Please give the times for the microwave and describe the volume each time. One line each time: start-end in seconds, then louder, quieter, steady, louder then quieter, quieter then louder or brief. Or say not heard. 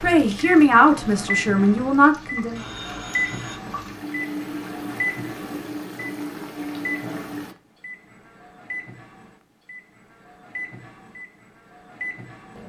0.0-12.6 quieter.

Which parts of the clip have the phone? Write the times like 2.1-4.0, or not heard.
2.5-3.6.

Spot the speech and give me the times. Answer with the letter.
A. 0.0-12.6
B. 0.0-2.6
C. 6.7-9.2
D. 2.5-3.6
B.